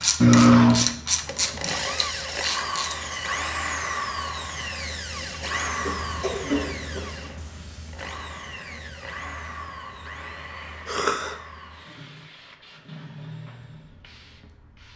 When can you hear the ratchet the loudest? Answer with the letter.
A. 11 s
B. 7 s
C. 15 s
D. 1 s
D.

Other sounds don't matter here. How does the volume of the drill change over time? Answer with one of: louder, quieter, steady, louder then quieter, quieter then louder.
quieter.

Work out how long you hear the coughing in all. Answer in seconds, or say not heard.
3 s.